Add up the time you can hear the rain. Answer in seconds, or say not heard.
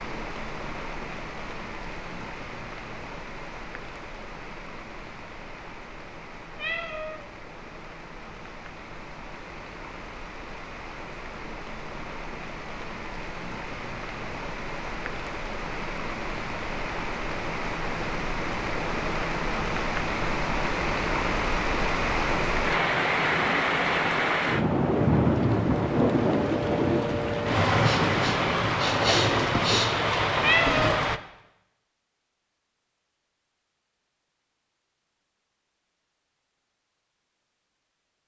31 s.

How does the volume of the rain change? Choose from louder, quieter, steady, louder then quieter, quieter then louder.
louder.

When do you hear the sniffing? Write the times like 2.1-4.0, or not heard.
27.8-29.9.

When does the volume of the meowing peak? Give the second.
31 s.